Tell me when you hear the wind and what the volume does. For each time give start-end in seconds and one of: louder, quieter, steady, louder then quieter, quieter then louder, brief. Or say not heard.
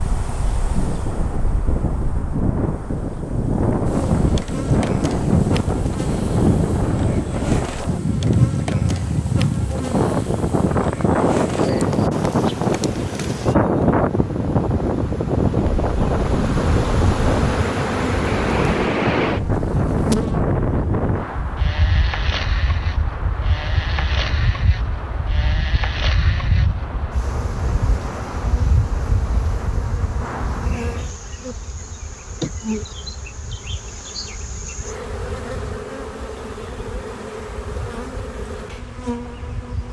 0.0-39.8 quieter.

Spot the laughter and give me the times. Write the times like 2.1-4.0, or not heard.
not heard.